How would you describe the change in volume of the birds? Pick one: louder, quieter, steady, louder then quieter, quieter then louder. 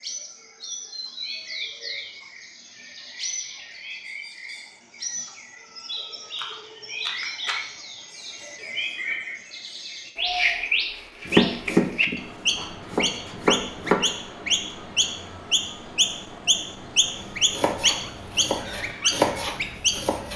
louder.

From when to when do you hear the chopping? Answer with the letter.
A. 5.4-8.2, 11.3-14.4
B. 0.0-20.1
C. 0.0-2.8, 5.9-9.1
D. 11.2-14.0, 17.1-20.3
D.